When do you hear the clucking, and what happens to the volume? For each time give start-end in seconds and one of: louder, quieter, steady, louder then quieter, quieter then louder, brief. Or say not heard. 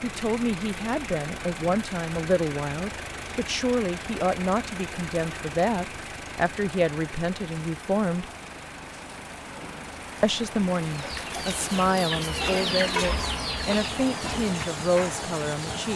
10.8-15.8 louder then quieter.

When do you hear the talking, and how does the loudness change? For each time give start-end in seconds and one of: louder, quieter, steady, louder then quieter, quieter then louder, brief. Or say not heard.
0.0-8.2 steady
10.2-15.9 steady.